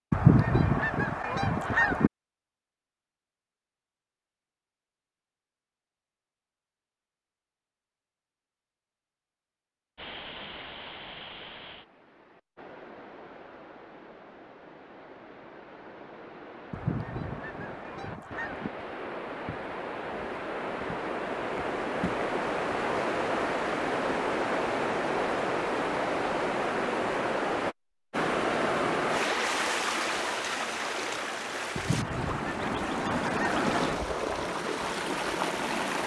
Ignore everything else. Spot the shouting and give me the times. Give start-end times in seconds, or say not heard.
not heard.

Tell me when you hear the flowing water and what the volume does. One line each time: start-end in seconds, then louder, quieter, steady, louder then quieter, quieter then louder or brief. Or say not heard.
9.9-36.0 louder.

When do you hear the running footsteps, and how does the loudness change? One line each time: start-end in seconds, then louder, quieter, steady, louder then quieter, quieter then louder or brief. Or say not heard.
not heard.